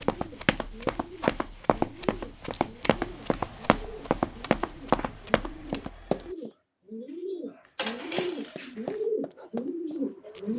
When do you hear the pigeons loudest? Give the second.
9 s.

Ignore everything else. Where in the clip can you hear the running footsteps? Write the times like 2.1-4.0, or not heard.
0.0-6.5, 7.8-10.5.